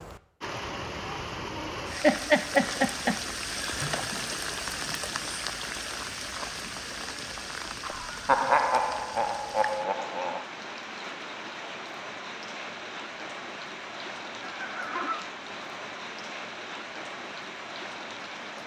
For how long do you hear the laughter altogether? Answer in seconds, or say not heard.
5 s.